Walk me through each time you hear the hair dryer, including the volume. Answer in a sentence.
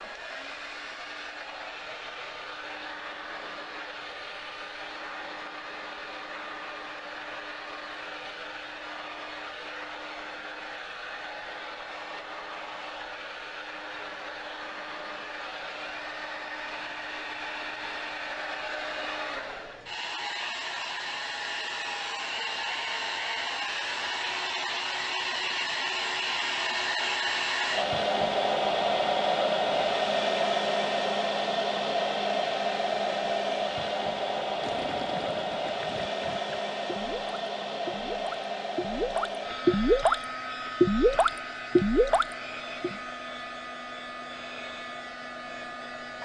You can hear the hair dryer from 0.0 to 46.1 s, getting louder then quieter.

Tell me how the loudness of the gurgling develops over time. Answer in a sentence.
The volume of the gurgling goes up.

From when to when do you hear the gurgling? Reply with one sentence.
The gurgling can be heard from 34.4 to 43.0 s.